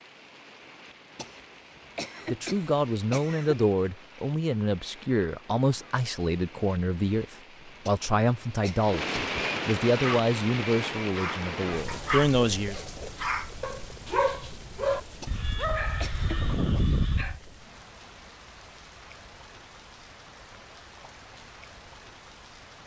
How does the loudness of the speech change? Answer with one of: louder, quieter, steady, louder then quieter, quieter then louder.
steady.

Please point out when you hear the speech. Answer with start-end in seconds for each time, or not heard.
2.2-12.8.